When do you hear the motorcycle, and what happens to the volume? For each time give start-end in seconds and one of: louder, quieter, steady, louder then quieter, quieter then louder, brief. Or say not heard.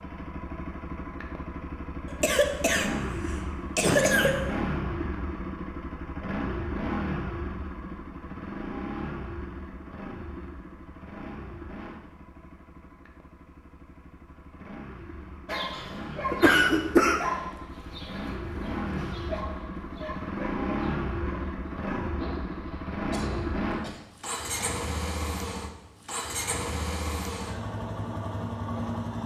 0.0-29.2 quieter then louder.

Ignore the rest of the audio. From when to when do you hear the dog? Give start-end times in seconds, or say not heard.
15.4-23.9.